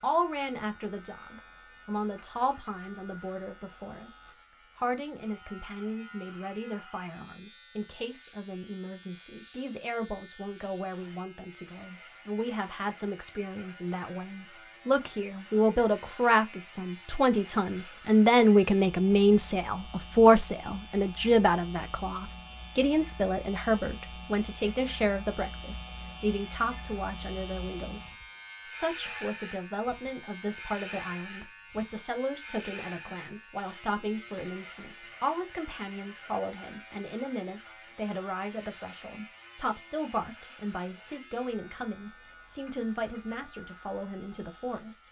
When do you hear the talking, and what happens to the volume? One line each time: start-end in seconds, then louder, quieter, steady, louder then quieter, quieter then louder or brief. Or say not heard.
0.0-45.0 louder then quieter.